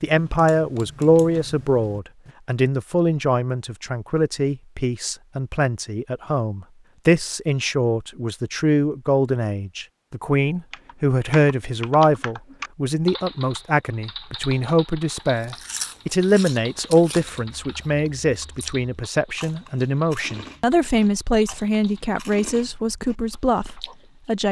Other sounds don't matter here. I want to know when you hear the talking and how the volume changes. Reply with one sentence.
The talking can be heard from 0.0 to 24.4 s, at a steady volume.